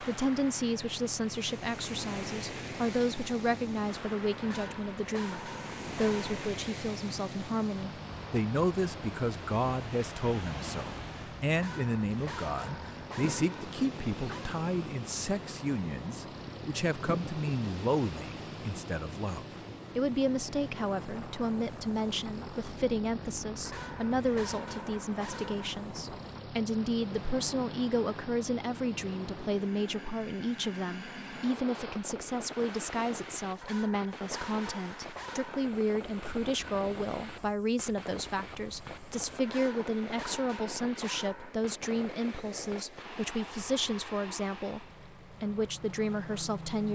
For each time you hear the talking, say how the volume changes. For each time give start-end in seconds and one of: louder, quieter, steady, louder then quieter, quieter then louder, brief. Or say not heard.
0.0-46.9 steady.